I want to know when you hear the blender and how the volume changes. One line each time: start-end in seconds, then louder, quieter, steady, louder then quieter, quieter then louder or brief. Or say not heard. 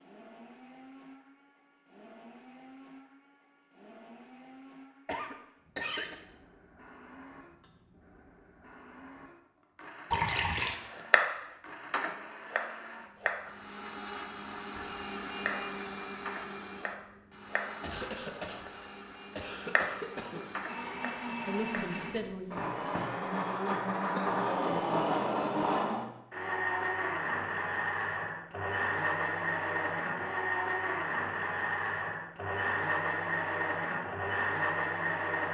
0.0-35.4 louder.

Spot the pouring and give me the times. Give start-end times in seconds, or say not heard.
10.1-10.8.